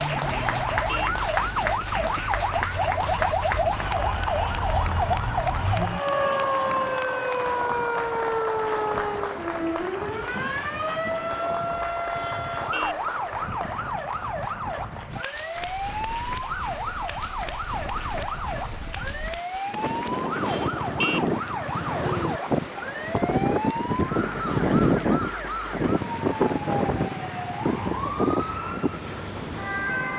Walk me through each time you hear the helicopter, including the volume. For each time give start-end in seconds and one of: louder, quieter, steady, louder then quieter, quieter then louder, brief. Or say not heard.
not heard.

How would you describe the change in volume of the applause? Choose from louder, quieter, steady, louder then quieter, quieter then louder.
quieter.